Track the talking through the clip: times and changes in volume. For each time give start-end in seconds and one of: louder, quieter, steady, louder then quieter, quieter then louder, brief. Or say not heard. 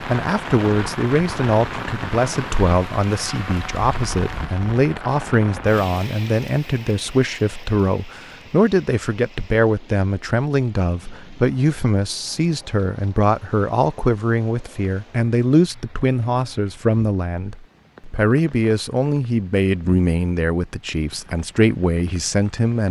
0.1-22.8 steady.